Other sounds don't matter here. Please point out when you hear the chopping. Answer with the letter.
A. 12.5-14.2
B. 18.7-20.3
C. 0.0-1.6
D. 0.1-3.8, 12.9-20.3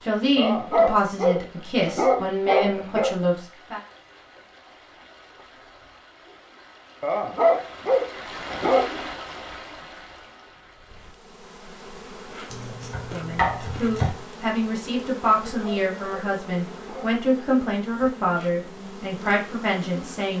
A.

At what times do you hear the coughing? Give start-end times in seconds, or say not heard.
not heard.